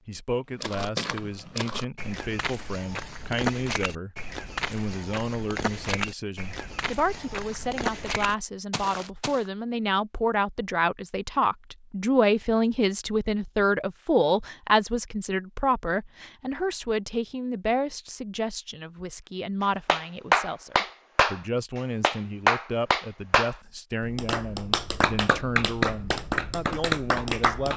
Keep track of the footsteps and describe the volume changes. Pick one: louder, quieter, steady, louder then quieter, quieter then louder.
steady.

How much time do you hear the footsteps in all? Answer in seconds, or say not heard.
9 s.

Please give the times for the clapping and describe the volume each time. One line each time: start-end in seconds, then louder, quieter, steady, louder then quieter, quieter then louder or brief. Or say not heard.
19.9-27.7 quieter.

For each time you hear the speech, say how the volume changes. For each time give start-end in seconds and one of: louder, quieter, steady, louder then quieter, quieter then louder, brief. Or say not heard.
0.1-27.7 louder then quieter.